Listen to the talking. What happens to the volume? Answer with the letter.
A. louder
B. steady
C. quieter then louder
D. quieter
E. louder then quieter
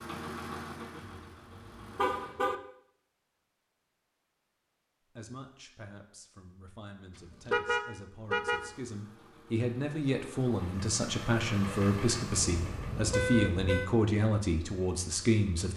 A.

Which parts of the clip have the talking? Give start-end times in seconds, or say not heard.
5.2-15.7.